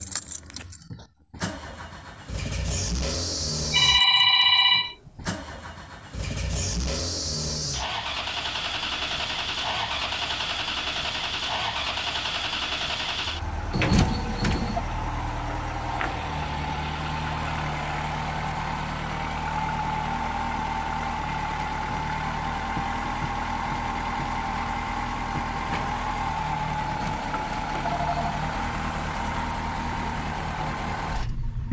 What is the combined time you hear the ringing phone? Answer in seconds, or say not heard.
4 s.